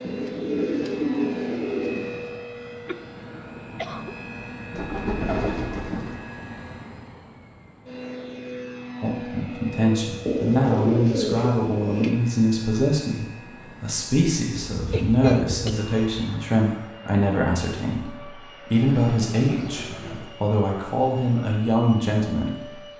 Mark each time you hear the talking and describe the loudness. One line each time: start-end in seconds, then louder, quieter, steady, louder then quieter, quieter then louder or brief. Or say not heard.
9.0-22.6 steady.